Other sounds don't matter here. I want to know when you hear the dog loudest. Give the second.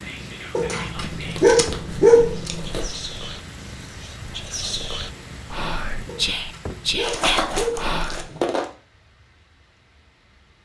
2 s.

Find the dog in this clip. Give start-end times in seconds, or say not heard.
0.6-2.7, 6.0-8.5.